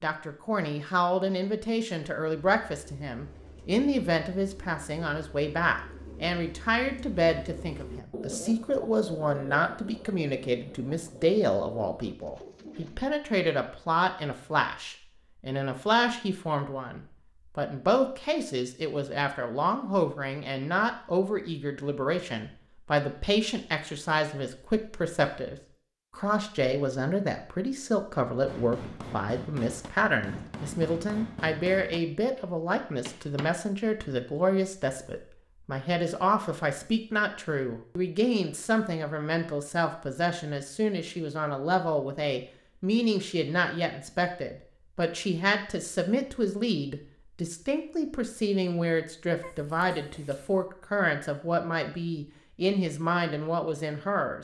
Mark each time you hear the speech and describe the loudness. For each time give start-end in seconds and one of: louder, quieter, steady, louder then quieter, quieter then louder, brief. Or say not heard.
0.0-54.4 steady.